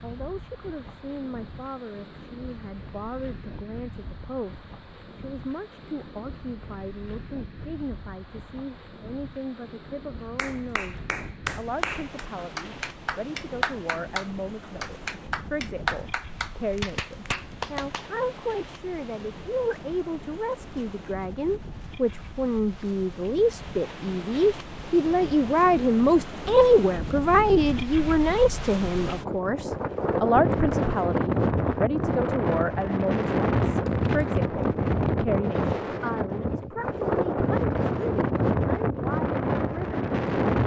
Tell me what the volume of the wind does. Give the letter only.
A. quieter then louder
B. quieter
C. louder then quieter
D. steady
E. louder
E.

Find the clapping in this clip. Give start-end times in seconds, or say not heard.
10.3-18.1.